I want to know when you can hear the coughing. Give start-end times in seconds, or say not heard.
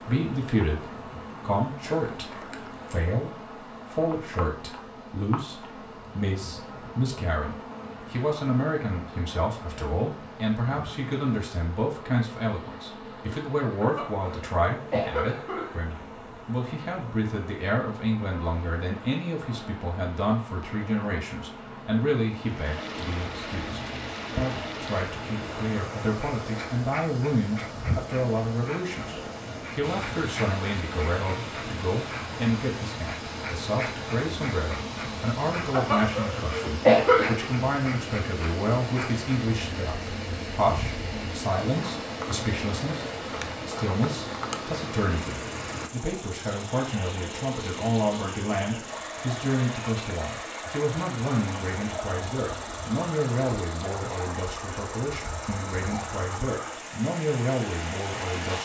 13.8-15.8, 35.7-37.5.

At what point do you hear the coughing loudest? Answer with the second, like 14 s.
37 s.